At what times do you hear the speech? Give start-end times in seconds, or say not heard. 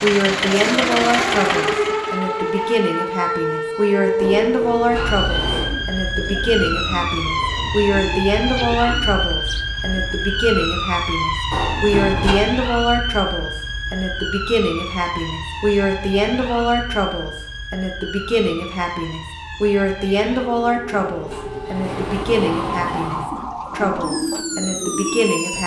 0.0-25.6.